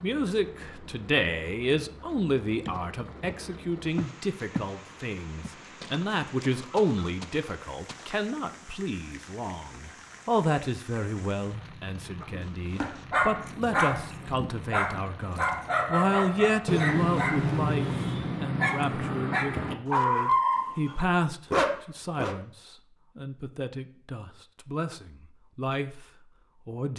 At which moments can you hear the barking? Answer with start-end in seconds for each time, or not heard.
12.2-22.4.